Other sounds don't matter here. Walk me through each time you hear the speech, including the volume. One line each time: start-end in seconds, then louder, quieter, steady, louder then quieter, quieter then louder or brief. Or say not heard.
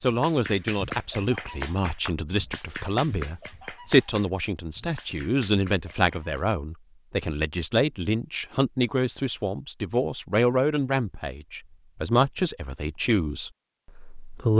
0.0-14.5 steady.